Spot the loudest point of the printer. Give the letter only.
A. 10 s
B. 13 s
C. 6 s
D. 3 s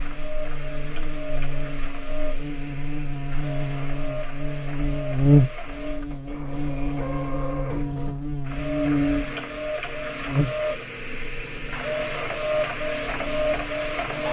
B.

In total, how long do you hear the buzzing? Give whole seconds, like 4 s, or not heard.
14 s.